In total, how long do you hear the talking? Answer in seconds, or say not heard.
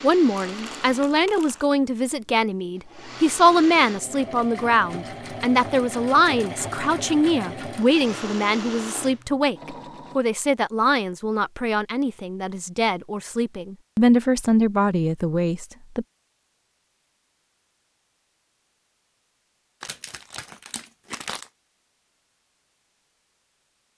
16 s.